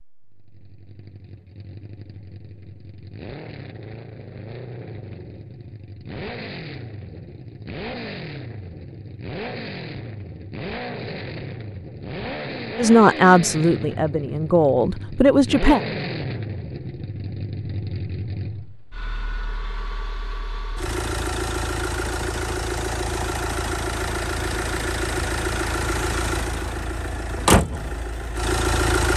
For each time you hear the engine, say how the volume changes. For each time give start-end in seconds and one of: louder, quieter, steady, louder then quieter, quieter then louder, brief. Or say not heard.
0.1-29.1 louder.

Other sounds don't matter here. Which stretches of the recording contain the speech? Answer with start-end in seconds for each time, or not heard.
12.8-15.8.